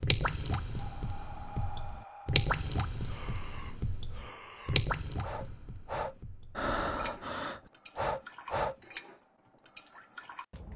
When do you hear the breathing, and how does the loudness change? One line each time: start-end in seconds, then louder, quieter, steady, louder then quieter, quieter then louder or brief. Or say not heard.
0.8-8.8 louder.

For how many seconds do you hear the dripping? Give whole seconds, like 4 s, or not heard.
11 s.